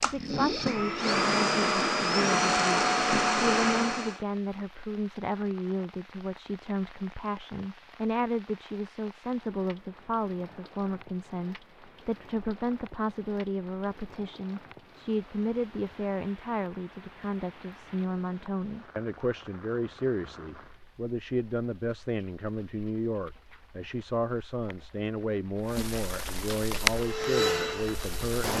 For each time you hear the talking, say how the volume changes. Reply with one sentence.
The talking can be heard from 0.0 to 28.5 s, at a steady volume.